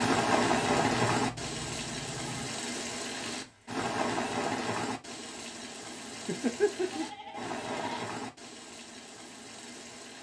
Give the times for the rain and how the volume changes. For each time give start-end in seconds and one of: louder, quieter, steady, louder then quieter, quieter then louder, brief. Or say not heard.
0.0-10.1 quieter.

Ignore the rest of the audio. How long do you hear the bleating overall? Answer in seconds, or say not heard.
4 s.